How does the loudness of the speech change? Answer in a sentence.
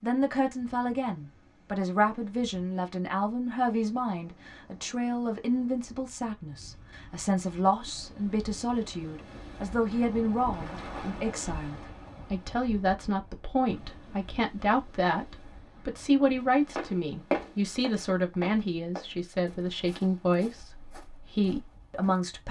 The volume of the speech stays about the same.